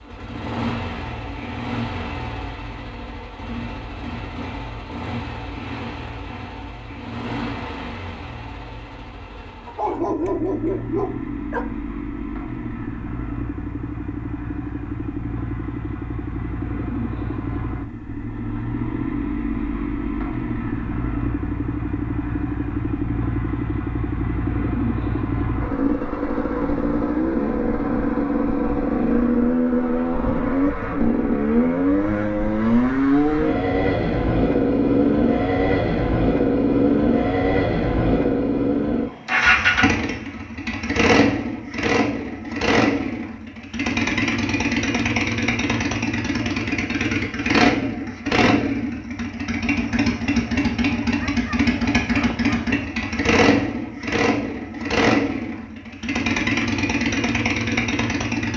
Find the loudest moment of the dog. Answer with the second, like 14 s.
10 s.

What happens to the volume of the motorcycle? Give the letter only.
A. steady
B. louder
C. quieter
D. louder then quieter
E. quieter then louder
B.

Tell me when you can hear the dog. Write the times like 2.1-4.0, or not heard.
9.7-11.7, 51.2-52.8.